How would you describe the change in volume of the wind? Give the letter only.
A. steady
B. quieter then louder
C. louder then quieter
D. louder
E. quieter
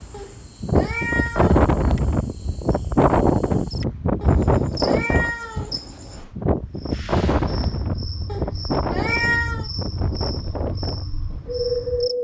E.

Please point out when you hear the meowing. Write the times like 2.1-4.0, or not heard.
0.1-1.6, 4.2-5.8, 8.2-9.7.